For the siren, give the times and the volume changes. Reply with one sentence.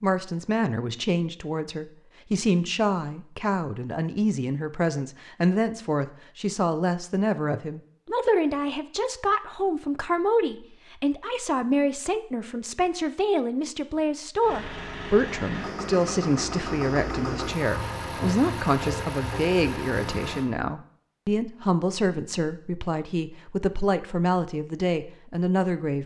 You can't hear the siren here.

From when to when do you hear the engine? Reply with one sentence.
The engine can be heard from 14.4 to 20.4 s.